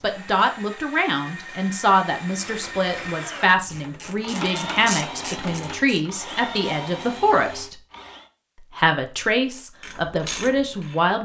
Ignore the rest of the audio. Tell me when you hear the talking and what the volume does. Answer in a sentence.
You can hear the talking from 0.0 to 7.8 s, at a steady volume; and briefly from 8.8 to 11.2 s.